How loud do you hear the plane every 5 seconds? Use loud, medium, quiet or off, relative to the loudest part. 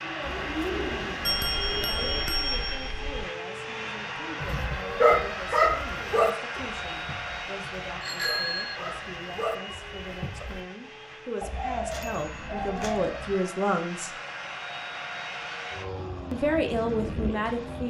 loud, loud, medium, loud.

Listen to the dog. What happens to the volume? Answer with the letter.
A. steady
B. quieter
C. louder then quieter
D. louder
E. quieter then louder
E.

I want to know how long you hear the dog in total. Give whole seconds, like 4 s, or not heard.
6 s.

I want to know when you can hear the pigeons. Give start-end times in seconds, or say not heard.
0.2-2.2, 11.4-13.3.